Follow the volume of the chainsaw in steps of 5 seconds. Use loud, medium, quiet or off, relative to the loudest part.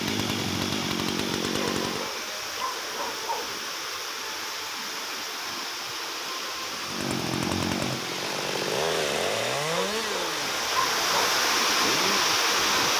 loud, loud, medium.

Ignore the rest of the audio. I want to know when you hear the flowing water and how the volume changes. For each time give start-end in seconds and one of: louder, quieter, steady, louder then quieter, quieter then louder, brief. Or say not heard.
0.0-12.9 louder.